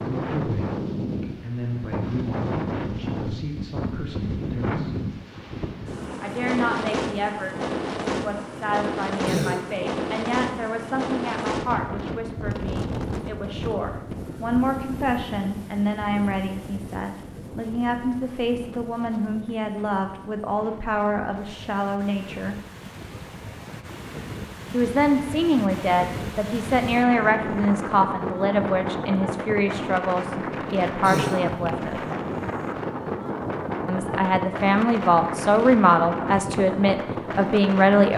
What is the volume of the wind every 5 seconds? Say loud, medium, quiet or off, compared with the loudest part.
loud, loud, loud, medium, medium, loud, loud, loud.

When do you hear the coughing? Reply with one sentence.
You can hear the coughing from 9.2 to 9.7 s and from 31.0 to 31.5 s.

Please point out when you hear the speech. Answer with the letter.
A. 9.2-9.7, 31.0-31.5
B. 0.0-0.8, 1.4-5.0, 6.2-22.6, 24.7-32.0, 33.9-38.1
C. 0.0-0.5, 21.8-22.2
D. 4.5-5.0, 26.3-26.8
B.